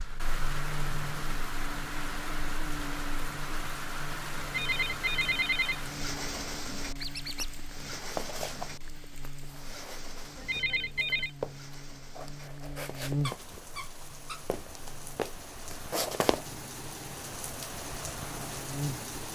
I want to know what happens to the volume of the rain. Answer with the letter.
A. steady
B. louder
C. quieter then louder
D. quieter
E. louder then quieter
C.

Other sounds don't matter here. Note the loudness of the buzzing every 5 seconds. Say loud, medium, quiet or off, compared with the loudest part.
loud, medium, loud, loud.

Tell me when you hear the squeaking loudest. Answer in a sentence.
The loudest moment of the squeaking is at 7 seconds.